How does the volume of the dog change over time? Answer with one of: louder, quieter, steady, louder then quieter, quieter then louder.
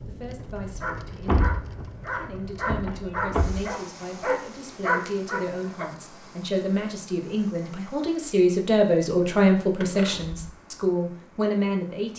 louder.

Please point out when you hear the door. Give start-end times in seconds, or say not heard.
1.2-3.6, 9.8-10.4.